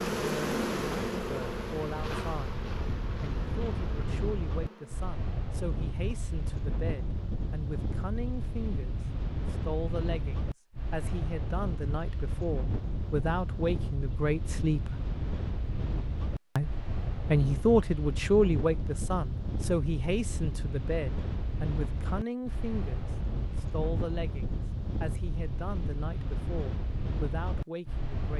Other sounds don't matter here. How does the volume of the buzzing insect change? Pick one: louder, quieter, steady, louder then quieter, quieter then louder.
quieter.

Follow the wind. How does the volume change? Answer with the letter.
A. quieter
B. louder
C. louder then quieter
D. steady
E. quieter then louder
D.